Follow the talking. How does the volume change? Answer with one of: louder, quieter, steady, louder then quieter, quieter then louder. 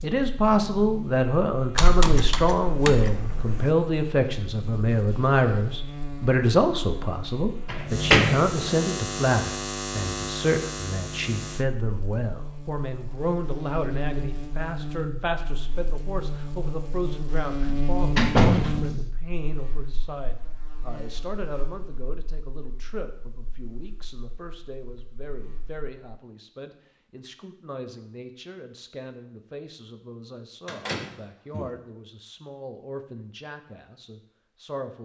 quieter.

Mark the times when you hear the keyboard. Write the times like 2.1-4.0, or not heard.
1.8-3.7.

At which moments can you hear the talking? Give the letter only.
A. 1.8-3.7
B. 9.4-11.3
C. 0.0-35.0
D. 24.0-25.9
C.